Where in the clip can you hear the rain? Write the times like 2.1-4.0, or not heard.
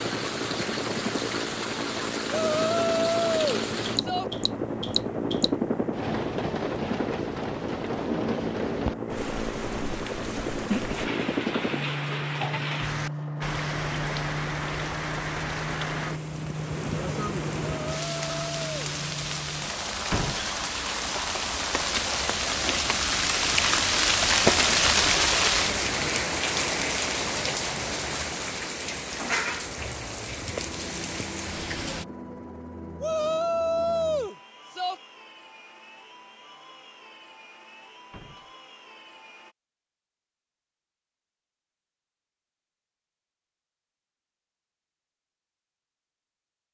0.0-32.0.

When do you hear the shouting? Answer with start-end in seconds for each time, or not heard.
2.3-4.2, 17.8-18.9, 33.0-35.0.